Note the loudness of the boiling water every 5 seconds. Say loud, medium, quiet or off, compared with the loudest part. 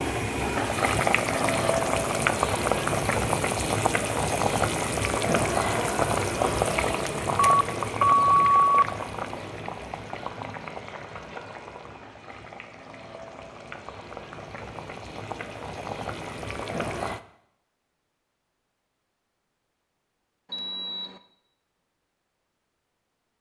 loud, loud, quiet, medium, off.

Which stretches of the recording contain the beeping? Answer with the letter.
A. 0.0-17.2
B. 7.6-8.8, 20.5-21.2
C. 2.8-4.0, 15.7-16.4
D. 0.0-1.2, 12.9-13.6
B.